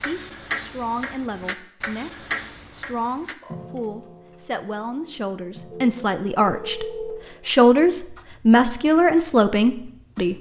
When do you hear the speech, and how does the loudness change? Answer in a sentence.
The speech can be heard from 0.1 to 10.3 s, getting louder.